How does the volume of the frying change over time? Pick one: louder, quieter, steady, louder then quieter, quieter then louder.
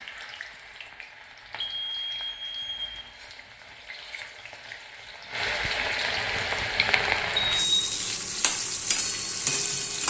louder.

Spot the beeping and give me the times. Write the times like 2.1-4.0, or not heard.
1.6-3.1, 7.3-8.0.